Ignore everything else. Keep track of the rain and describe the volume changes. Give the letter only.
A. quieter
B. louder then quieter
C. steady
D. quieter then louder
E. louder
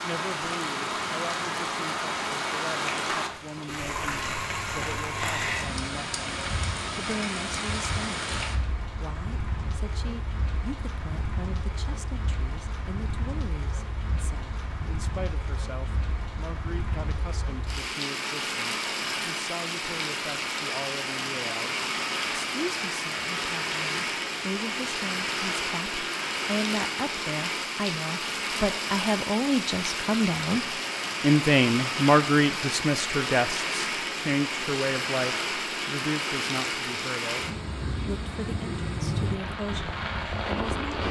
D.